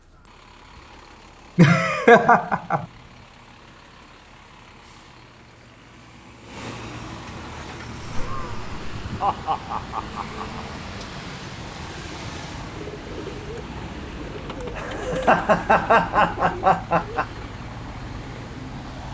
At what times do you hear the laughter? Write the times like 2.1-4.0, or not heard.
1.6-2.9, 8.0-10.7, 14.6-17.2.